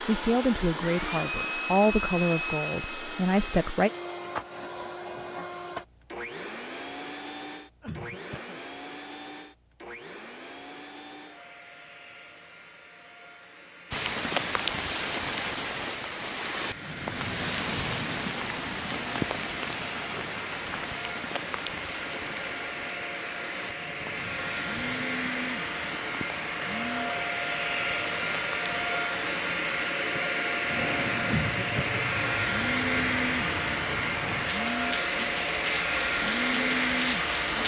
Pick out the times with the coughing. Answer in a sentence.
You can hear the coughing from 7.8 to 8.6 s and from 31.2 to 32.0 s.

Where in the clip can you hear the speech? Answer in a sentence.
The speech can be heard from 0.0 to 3.9 s.